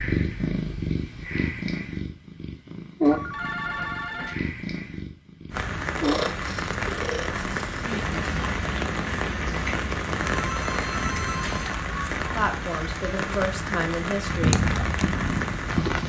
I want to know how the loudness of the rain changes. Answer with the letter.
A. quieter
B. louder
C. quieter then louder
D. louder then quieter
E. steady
E.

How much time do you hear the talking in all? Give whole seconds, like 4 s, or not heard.
2 s.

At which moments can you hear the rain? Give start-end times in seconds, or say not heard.
5.5-16.0.